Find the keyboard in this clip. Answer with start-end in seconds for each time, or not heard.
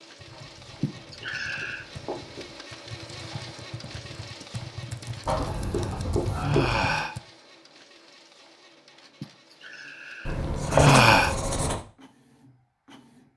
0.1-7.2.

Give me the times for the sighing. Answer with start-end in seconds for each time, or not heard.
0.8-1.9, 4.8-7.2, 9.2-11.3.